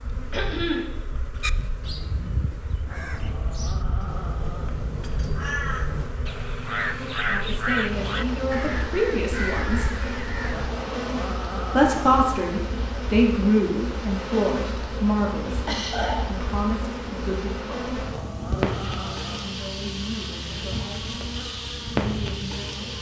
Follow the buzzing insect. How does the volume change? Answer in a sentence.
The volume of the buzzing insect goes up.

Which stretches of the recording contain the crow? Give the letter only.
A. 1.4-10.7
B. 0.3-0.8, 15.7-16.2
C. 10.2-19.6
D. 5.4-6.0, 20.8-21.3
A.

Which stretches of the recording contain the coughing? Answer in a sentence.
You can hear the coughing from 0.3 to 0.8 s and from 15.7 to 16.2 s.